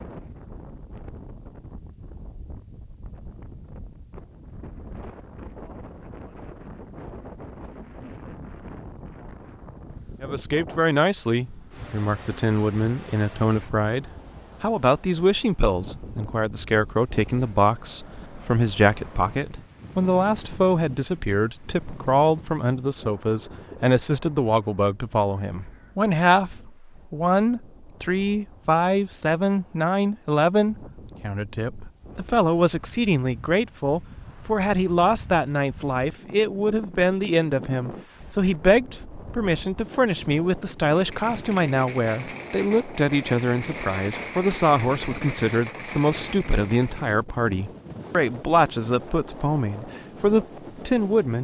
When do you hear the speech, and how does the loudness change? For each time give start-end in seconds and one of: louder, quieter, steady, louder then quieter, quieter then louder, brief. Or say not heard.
10.2-51.4 steady.